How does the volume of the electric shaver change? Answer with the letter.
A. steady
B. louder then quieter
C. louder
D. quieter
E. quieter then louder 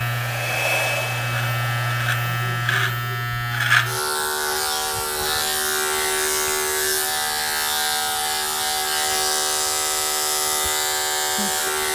A.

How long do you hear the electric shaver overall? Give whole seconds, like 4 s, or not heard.
12 s.